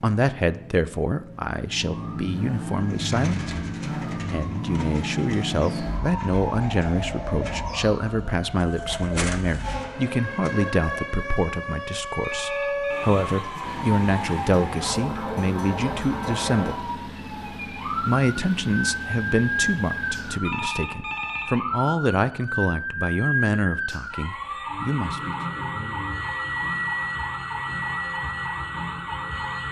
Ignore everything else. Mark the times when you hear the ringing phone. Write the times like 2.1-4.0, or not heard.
12.2-13.2, 20.4-21.9.